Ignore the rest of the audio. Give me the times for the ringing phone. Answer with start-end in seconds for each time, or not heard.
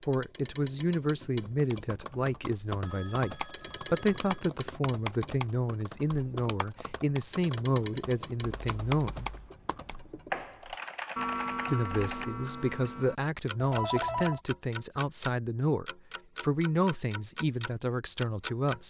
2.8-4.5, 8.6-9.6, 13.6-14.4.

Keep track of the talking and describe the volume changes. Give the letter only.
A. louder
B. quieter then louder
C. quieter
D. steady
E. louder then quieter
D.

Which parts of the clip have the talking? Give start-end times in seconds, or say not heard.
0.1-9.3, 11.7-18.8.